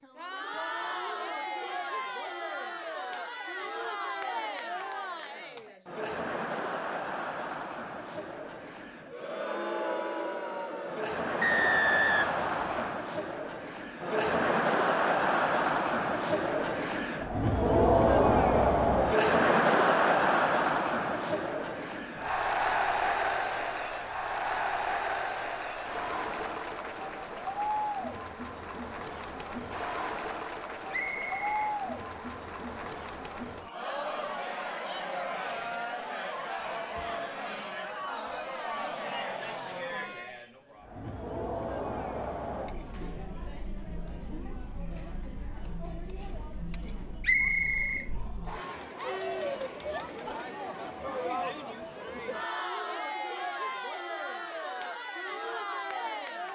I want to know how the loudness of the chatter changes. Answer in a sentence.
The volume of the chatter goes up, then down.